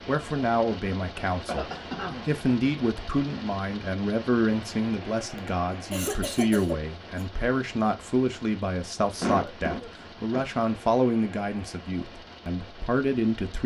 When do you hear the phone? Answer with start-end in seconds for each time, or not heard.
not heard.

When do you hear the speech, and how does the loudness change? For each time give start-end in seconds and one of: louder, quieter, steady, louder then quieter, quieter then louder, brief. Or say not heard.
0.1-13.6 steady.